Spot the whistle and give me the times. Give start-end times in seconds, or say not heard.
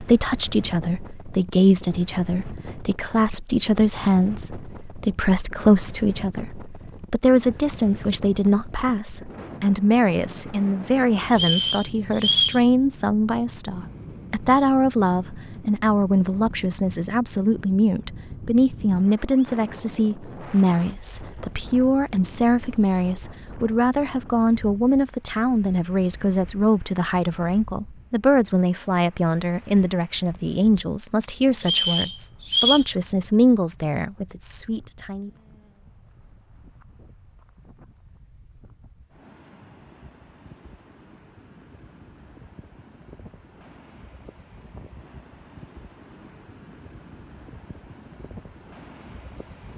11.3-12.6, 31.6-32.9.